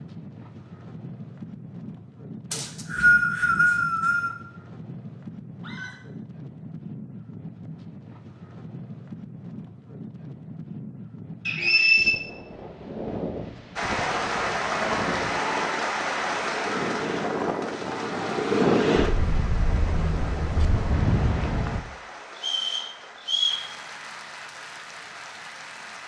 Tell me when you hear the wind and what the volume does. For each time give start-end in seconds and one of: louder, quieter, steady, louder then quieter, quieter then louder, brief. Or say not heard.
0.0-21.9 louder.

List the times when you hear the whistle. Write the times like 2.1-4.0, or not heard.
2.5-4.3, 11.4-12.2, 22.4-23.6.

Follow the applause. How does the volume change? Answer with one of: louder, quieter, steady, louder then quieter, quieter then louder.
quieter.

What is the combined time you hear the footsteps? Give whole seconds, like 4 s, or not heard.
not heard.